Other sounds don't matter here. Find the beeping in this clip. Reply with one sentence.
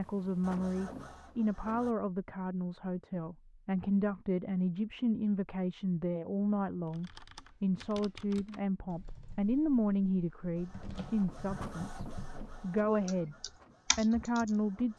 You can't hear the beeping here.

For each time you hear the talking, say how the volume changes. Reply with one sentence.
The talking can be heard from 0.0 to 14.9 s, at a steady volume.